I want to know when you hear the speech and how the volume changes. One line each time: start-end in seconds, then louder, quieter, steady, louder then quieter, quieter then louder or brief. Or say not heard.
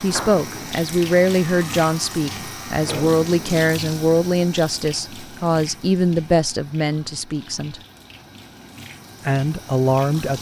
0.0-7.8 steady
9.2-10.3 brief.